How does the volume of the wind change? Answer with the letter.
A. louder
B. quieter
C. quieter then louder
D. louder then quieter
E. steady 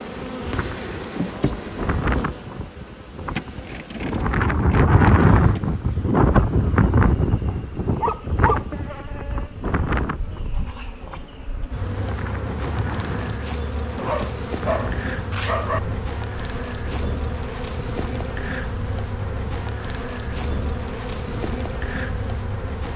D.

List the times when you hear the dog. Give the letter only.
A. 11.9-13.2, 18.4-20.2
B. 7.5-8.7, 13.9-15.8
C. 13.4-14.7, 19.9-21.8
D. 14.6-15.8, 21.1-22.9
B.